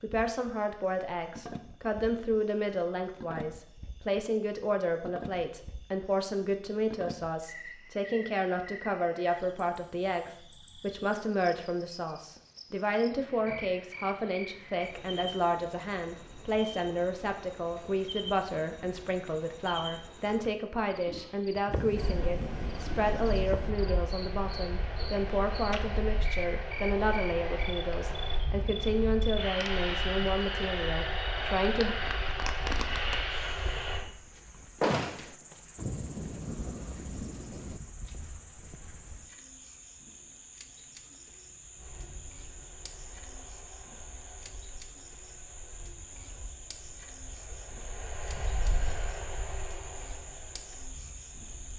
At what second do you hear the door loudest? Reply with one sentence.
The loudest moment of the door is at 35 seconds.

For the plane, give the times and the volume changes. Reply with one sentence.
The plane can be heard from 21.9 to 34.0 s, getting louder; and from 41.8 to 51.7 s, getting louder then quieter.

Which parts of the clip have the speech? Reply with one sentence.
You can hear the speech from 0.0 to 31.9 s.